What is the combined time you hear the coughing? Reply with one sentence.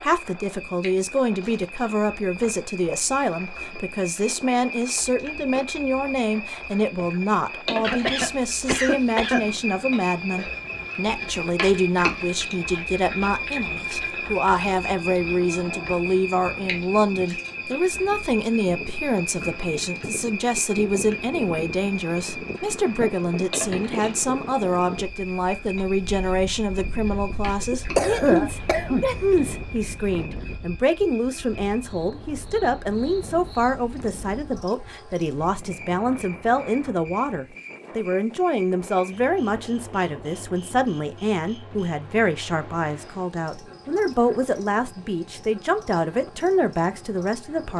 The coughing can be heard for 3 seconds in total.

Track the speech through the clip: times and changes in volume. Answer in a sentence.
The speech can be heard from 0.0 to 47.7 s, at a steady volume.